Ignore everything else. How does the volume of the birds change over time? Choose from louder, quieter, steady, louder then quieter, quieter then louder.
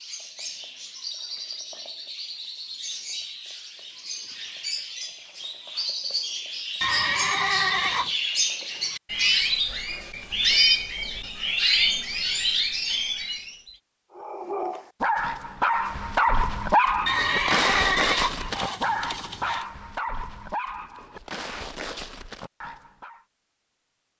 louder.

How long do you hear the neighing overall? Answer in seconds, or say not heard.
4 s.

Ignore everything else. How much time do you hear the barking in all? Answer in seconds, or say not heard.
9 s.